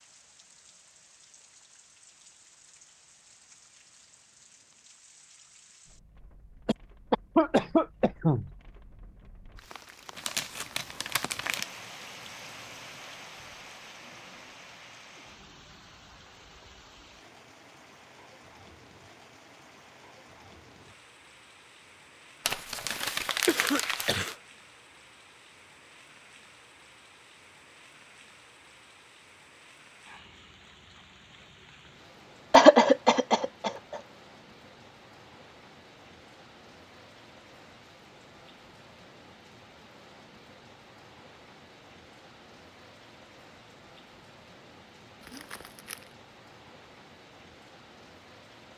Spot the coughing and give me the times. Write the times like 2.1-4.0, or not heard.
6.7-8.5, 23.4-24.4, 32.5-33.7.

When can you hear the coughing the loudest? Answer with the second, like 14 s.
33 s.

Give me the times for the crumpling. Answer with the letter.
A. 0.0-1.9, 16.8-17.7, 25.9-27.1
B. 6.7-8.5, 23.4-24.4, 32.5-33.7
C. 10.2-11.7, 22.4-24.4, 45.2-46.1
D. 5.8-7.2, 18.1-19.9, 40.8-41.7
C.